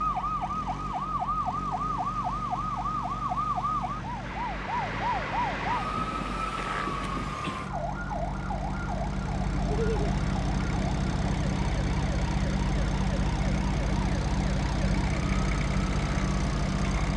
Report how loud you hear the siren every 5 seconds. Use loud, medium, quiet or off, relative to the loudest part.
loud, loud, medium, medium.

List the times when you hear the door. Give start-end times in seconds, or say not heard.
not heard.